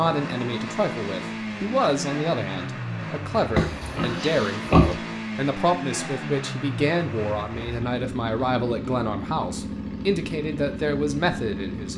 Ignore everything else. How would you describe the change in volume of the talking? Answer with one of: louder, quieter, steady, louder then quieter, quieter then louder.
steady.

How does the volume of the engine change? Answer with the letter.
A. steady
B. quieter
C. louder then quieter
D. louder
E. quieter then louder
A.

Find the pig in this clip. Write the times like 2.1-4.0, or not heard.
3.5-5.0.